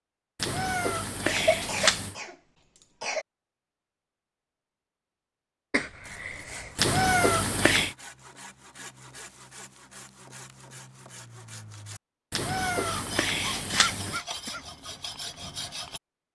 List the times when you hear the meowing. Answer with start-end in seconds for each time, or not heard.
0.3-2.1, 6.8-8.0, 12.3-14.2.